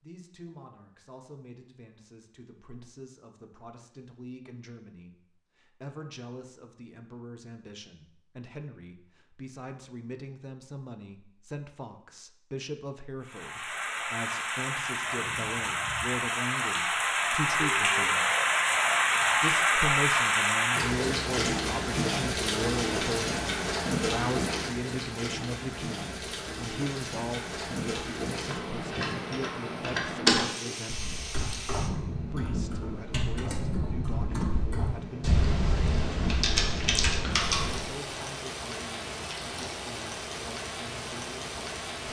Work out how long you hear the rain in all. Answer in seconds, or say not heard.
29 s.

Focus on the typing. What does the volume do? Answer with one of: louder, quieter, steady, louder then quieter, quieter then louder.
quieter then louder.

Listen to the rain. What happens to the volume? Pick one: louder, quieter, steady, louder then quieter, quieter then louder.
quieter.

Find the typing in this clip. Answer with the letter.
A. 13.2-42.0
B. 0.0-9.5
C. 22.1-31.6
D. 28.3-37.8
D.